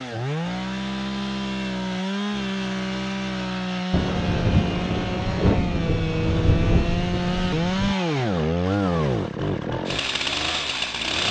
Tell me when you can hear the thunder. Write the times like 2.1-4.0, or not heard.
3.9-8.0.